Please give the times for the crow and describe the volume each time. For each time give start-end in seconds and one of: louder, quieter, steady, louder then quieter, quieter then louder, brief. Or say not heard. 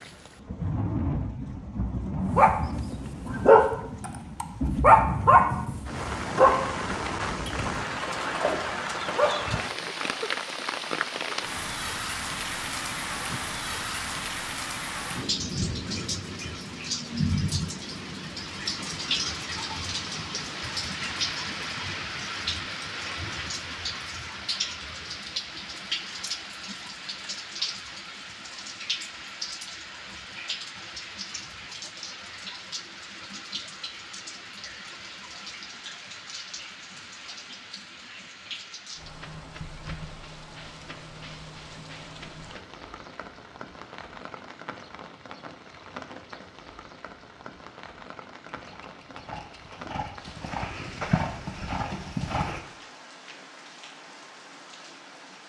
not heard.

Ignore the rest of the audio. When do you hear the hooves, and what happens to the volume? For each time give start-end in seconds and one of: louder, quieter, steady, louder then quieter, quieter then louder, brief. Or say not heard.
48.5-52.6 louder.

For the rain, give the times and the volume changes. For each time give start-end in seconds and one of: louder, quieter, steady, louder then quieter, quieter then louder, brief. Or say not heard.
0.0-55.4 quieter.